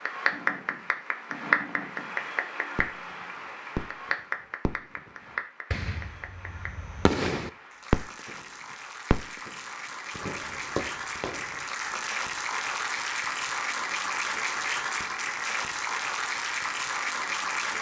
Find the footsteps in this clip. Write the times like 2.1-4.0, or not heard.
not heard.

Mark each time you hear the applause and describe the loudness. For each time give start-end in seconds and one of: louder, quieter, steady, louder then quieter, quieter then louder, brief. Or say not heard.
0.0-17.7 quieter then louder.